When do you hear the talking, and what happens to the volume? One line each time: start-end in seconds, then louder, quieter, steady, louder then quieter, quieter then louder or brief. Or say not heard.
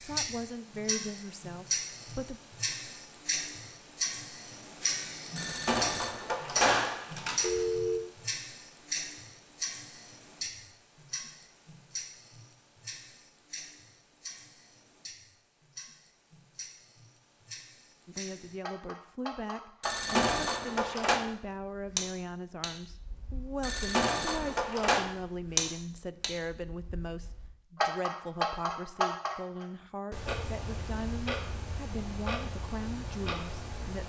0.0-2.4 brief
18.1-34.0 steady.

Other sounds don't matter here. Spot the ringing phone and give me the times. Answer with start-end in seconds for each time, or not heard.
5.3-8.0, 19.8-21.2, 23.6-25.1.